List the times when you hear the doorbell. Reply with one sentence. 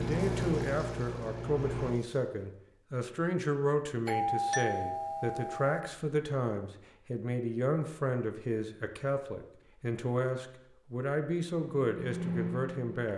The doorbell can be heard from 4.0 to 5.8 s.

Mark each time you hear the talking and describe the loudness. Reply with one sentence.
You can hear the talking from 0.0 to 13.1 s, at a steady volume.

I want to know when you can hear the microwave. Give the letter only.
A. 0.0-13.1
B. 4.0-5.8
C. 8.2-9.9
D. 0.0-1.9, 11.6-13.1
D.